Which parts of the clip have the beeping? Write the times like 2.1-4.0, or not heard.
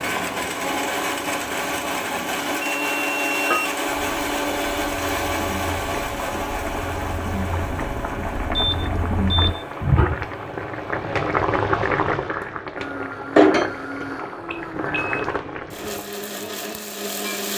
2.6-3.8, 8.6-9.7, 14.5-15.2.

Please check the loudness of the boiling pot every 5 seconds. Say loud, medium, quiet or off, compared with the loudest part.
medium, medium, loud, medium.